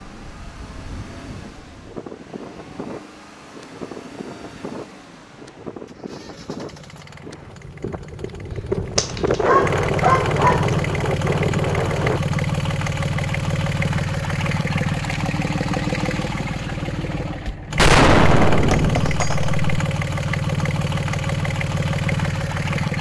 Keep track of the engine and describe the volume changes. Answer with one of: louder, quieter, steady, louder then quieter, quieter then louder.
louder.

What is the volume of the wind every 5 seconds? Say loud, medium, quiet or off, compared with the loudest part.
quiet, loud, loud, off, off.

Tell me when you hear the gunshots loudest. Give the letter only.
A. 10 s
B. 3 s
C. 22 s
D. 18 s
D.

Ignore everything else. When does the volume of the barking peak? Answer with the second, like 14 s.
10 s.